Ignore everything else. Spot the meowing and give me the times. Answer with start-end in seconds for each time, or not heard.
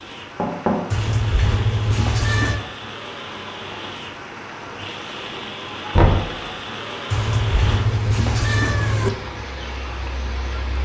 0.9-2.6, 7.1-9.1.